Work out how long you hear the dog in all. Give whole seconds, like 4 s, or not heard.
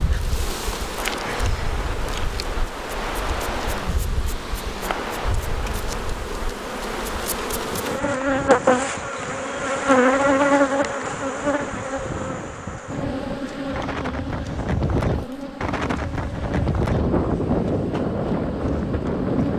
not heard.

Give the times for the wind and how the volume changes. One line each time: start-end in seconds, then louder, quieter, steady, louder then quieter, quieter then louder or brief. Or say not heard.
0.0-19.5 quieter then louder.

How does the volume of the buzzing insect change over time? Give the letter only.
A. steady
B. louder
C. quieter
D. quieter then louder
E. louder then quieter
E.